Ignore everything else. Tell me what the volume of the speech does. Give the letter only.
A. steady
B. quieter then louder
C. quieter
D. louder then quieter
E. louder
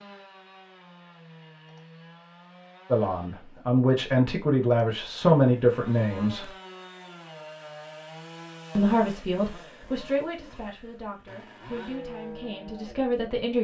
B.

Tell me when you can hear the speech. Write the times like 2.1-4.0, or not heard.
2.9-6.5, 8.8-13.5.